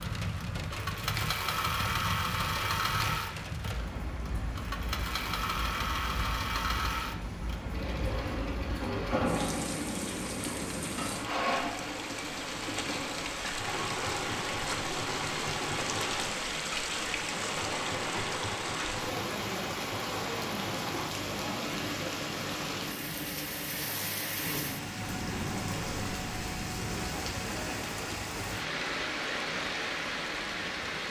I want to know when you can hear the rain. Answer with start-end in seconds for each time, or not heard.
0.0-31.0.